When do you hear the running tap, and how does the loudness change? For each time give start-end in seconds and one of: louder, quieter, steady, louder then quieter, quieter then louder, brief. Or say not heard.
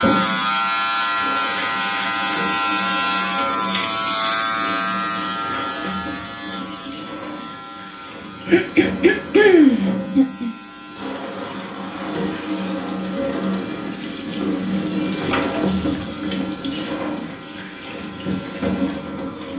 0.0-19.5 louder.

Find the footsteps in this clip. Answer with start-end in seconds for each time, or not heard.
not heard.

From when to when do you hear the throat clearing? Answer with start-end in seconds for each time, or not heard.
8.4-10.6.